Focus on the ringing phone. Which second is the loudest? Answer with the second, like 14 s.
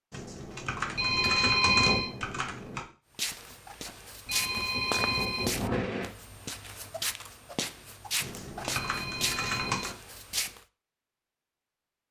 2 s.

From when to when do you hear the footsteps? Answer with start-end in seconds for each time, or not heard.
3.1-10.6.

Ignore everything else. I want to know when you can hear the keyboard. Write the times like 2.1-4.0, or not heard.
0.1-2.9, 8.2-9.9.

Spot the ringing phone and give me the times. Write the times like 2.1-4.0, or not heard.
0.9-2.1, 4.2-6.0, 8.7-9.9.